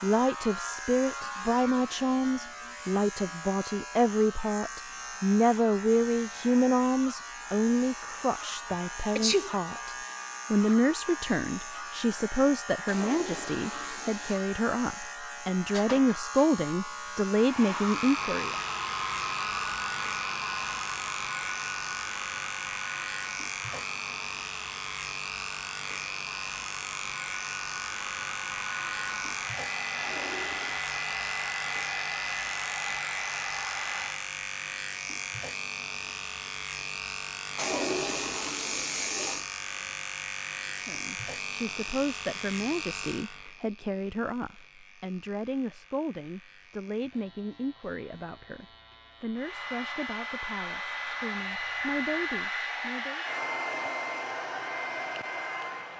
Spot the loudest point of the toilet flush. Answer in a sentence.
The loudest moment of the toilet flush is at 38 seconds.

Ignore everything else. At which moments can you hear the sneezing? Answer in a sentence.
The sneezing can be heard from 8.7 to 9.8 s.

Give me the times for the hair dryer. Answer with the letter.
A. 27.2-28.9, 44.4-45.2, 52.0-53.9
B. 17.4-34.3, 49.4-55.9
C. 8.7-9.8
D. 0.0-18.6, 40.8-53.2
B.